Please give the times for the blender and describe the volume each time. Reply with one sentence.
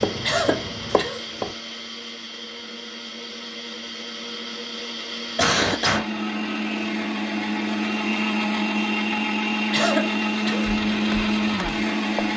You can hear the blender from 0.0 to 12.3 s, getting louder.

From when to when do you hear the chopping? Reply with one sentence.
The chopping can be heard from 0.0 to 1.6 s and from 10.6 to 12.2 s.